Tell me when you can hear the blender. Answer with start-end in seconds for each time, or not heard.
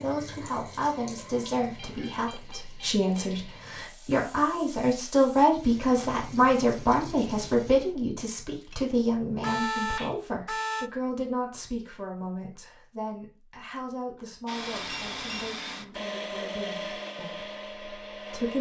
14.4-18.5.